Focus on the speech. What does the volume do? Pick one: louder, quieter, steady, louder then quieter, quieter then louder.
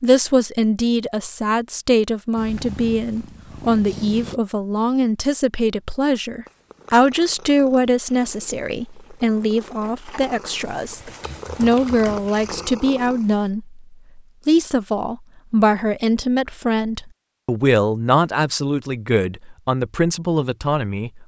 steady.